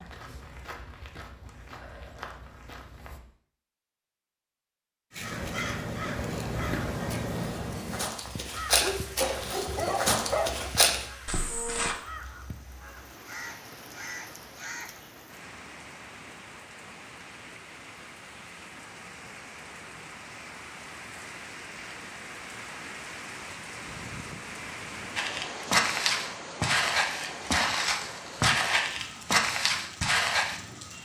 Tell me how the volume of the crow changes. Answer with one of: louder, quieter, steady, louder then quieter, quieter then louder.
quieter.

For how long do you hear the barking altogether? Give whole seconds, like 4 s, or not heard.
2 s.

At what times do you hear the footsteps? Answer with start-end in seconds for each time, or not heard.
0.0-3.2, 6.5-11.9, 25.1-30.6.